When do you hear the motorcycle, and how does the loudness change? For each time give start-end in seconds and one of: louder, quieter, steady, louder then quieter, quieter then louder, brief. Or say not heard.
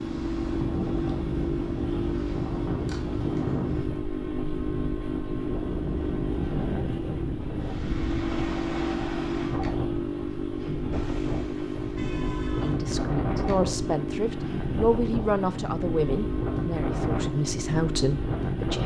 0.0-18.8 steady.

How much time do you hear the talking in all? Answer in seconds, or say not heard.
6 s.